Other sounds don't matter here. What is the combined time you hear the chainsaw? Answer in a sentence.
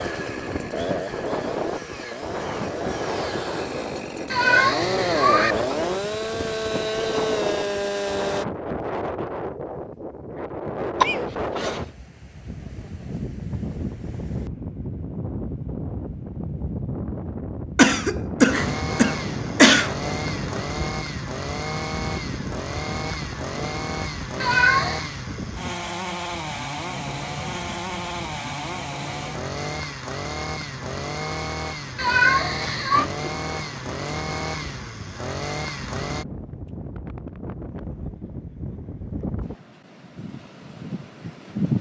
The chainsaw can be heard for 26 seconds in total.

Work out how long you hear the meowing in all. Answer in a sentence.
You can hear the meowing for 3 seconds altogether.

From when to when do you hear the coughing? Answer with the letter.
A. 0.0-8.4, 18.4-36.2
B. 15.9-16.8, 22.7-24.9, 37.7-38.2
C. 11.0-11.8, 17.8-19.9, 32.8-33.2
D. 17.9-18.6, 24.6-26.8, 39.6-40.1
C.